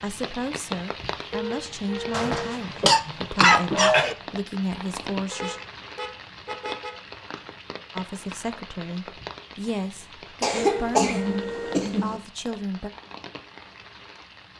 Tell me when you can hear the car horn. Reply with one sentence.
You can hear the car horn from 1.3 to 2.6 s, from 5.3 to 7.0 s and from 10.6 to 11.9 s.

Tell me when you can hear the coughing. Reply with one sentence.
You can hear the coughing from 2.1 to 4.2 s and from 10.4 to 12.2 s.